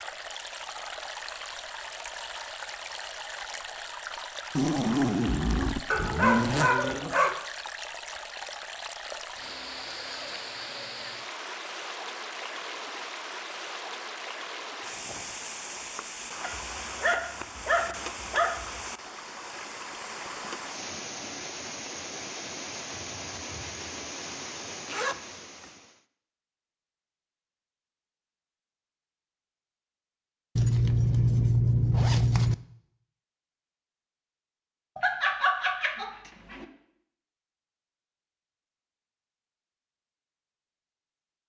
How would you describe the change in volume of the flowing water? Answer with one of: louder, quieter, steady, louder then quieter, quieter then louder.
steady.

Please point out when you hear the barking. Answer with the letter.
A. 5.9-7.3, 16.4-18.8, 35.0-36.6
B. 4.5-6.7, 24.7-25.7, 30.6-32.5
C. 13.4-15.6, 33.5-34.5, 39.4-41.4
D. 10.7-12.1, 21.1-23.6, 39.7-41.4
A.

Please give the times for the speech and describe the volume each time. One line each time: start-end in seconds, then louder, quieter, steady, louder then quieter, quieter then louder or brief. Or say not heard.
not heard.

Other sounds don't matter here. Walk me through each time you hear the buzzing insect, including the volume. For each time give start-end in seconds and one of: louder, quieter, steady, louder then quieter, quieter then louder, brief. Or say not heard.
not heard.